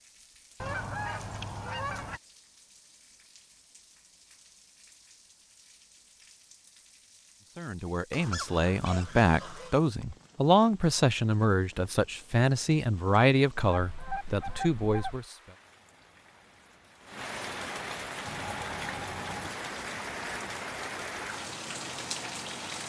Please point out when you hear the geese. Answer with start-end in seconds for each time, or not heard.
0.6-2.2, 8.1-9.8, 13.7-15.2, 18.2-19.5.